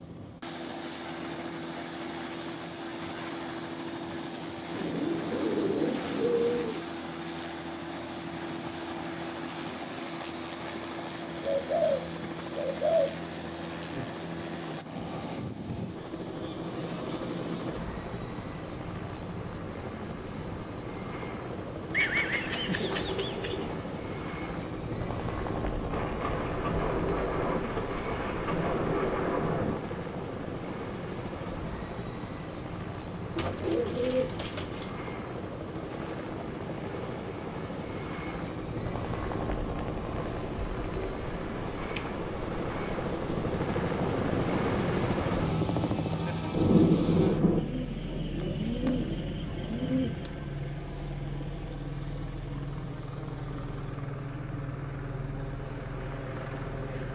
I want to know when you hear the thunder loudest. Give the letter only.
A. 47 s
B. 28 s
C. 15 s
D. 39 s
A.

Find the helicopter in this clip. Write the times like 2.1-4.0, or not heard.
0.0-57.1.